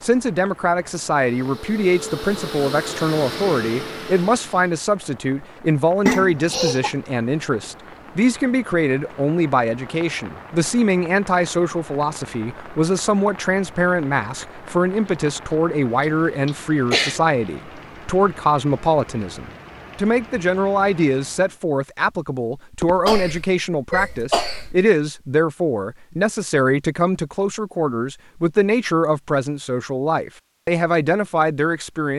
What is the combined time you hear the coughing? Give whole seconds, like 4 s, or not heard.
4 s.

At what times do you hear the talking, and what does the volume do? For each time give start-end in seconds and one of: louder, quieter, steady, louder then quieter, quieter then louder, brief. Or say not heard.
0.0-32.1 steady.